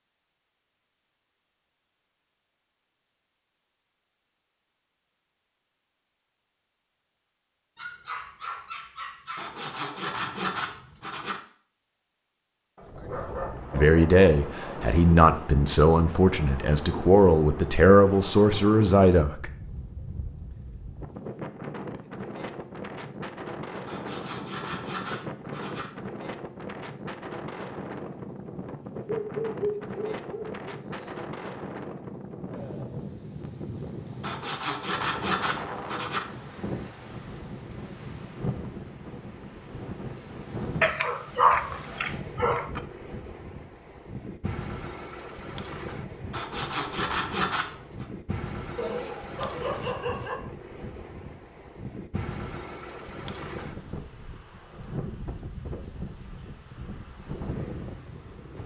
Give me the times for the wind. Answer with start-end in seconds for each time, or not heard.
12.8-58.6.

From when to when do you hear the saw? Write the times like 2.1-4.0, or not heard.
9.3-11.4, 23.9-25.9, 34.2-36.2, 46.3-48.0.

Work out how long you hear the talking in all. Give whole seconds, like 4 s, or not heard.
6 s.